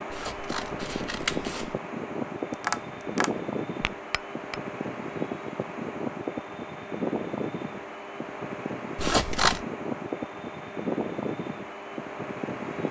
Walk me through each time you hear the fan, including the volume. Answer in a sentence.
You can hear the fan from 0.0 to 12.8 s, at a steady volume.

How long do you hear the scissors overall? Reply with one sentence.
You can hear the scissors for 2 seconds altogether.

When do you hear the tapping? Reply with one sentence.
The tapping can be heard from 2.5 to 4.6 s.